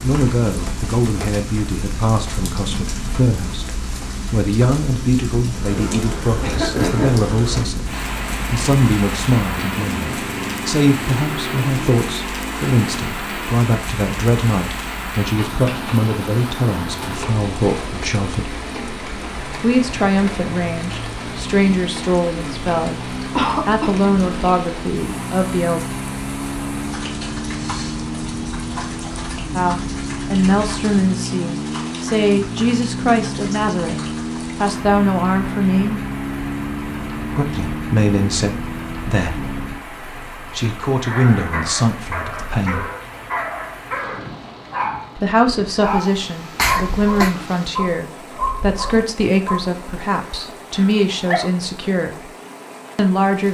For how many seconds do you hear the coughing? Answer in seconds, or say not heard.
2 s.